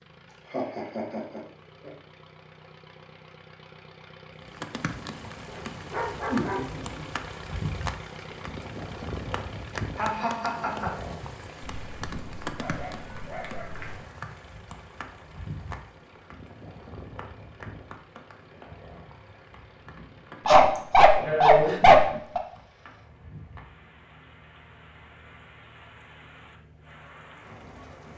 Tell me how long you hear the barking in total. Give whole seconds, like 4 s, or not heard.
6 s.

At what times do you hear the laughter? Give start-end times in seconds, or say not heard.
0.5-1.9, 9.9-11.0, 20.8-21.8.